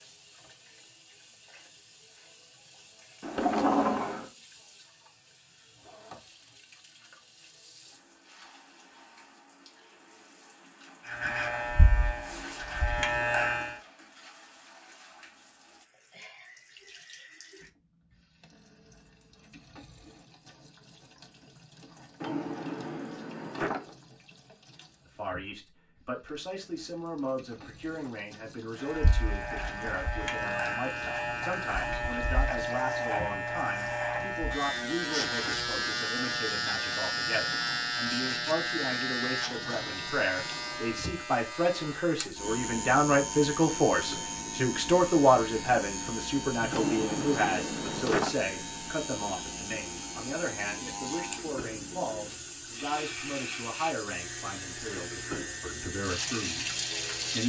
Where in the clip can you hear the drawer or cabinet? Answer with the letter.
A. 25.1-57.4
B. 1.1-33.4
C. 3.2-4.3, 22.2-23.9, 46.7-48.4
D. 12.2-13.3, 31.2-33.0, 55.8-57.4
C.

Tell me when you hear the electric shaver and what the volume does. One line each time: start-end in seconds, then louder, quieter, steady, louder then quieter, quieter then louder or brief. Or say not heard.
11.1-13.8 brief
28.8-57.4 quieter.